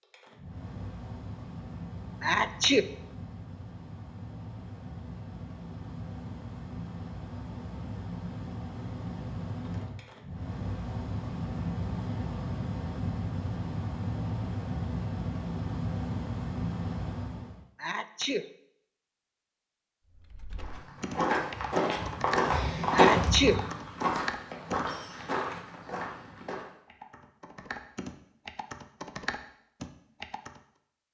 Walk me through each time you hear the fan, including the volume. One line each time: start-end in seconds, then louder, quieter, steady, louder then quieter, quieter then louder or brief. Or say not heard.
0.0-17.6 louder.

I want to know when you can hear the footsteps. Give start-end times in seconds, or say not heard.
20.6-26.6.